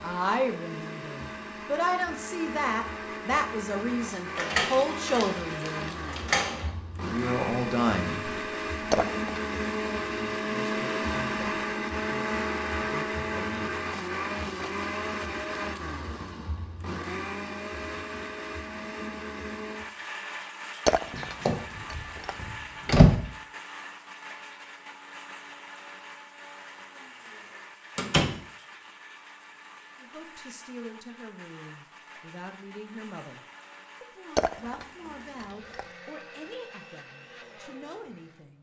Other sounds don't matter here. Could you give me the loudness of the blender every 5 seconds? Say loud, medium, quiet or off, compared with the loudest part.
medium, loud, loud, medium, medium, quiet, quiet, quiet.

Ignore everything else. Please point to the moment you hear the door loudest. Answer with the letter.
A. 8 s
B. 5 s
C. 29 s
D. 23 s
D.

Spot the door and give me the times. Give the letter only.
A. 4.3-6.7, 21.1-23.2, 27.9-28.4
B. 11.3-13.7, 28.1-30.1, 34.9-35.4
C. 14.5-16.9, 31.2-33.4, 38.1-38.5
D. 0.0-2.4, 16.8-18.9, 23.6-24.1
A.